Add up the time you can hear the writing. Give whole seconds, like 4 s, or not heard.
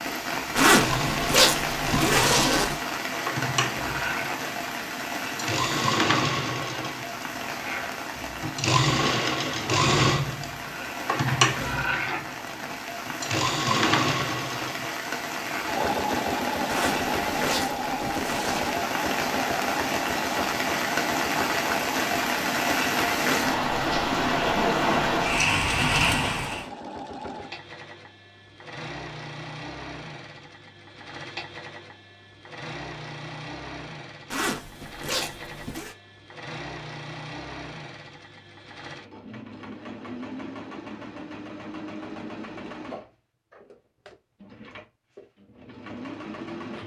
not heard.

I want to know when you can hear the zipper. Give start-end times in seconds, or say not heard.
0.6-2.8, 16.6-18.8, 34.3-36.0.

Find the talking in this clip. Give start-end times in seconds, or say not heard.
not heard.